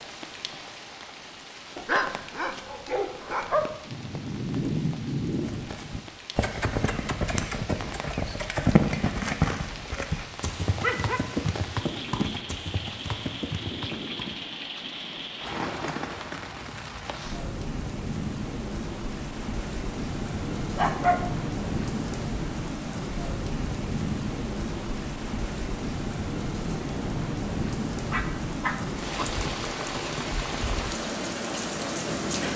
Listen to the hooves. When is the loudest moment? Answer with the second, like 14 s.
9 s.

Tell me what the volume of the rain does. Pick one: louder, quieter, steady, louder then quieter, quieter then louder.
louder.